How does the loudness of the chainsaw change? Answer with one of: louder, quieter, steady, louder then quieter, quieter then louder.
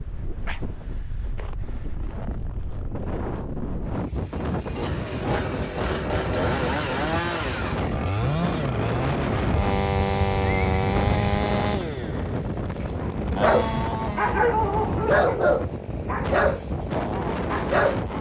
quieter.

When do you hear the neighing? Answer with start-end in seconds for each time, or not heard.
9.5-11.4.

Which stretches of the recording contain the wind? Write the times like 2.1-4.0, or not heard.
0.0-18.1.